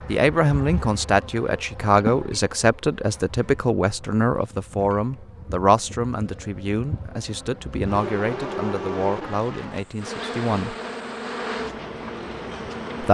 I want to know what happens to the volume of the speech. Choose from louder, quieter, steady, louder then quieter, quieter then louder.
quieter.